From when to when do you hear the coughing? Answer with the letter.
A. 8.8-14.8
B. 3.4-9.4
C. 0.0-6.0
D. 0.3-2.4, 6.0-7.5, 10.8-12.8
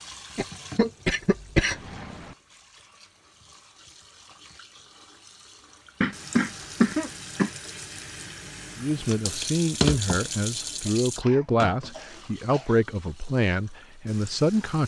D.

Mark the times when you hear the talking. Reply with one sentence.
The talking can be heard from 8.8 to 14.8 s.